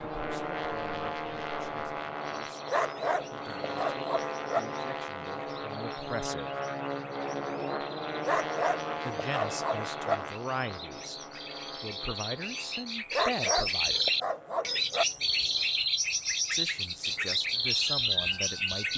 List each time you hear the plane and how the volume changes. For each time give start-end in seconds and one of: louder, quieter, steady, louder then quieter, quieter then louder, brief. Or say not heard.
0.0-18.9 quieter.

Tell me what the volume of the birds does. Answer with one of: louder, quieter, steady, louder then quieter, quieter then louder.
louder.